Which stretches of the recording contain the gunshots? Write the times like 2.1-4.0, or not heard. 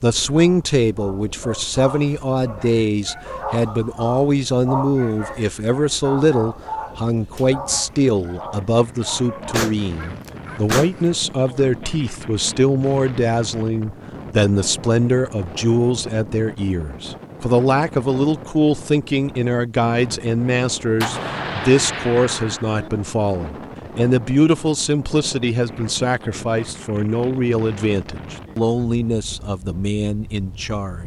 9.5-11.1, 21.0-22.9.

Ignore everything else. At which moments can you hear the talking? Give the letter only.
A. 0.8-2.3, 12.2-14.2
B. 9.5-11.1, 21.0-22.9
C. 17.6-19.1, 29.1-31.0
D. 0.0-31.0
D.